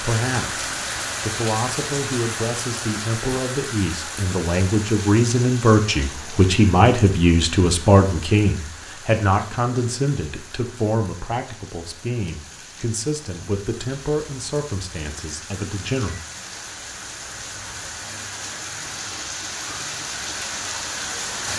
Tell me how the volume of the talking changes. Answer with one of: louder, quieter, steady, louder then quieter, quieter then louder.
louder then quieter.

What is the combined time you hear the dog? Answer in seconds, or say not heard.
not heard.